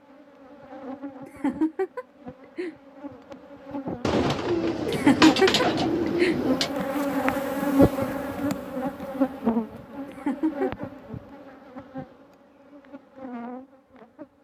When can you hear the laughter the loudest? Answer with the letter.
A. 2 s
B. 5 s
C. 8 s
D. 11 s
B.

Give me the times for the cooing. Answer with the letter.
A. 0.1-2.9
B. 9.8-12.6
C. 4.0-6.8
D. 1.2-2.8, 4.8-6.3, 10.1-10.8
C.